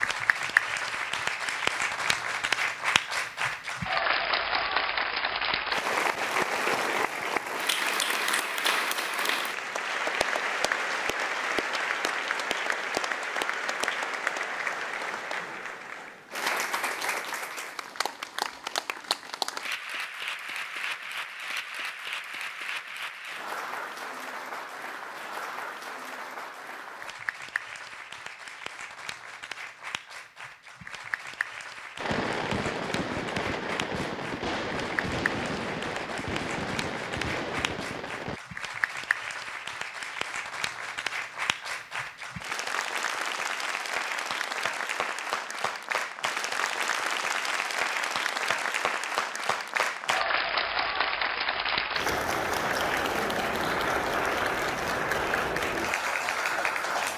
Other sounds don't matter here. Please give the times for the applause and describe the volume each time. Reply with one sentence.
The applause can be heard from 0.0 to 57.1 s, getting quieter then louder.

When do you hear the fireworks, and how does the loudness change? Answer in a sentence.
You can hear the fireworks from 31.9 to 38.4 s, at a steady volume.